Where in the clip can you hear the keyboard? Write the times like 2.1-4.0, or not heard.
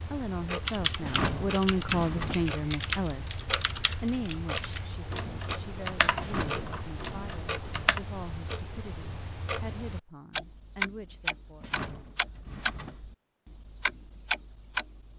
0.7-8.0.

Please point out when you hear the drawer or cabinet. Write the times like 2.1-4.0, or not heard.
1.0-2.5, 6.2-6.7, 11.6-13.1.